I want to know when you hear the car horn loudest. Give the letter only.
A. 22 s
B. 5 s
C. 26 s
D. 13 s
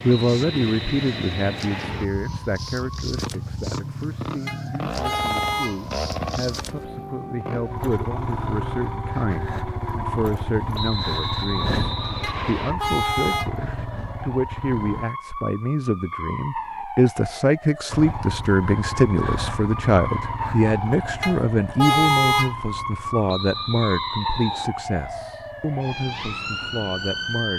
A.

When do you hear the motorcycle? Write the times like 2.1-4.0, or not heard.
0.0-15.1, 17.9-27.2.